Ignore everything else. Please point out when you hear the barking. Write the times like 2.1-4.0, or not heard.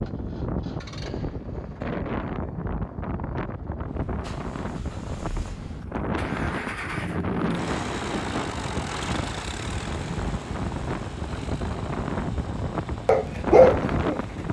13.1-14.2.